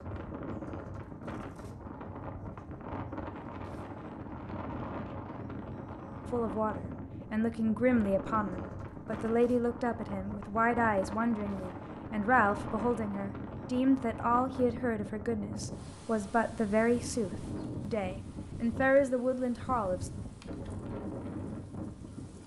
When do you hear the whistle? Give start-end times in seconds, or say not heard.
not heard.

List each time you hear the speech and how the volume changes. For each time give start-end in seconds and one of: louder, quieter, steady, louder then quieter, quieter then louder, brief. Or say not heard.
6.3-20.1 steady.